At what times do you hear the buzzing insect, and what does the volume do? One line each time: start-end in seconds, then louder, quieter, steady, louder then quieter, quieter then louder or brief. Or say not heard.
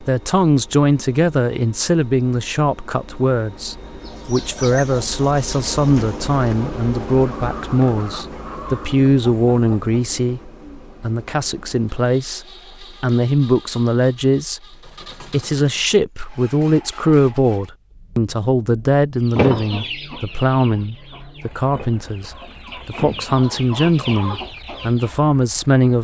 not heard.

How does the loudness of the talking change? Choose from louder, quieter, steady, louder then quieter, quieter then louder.
steady.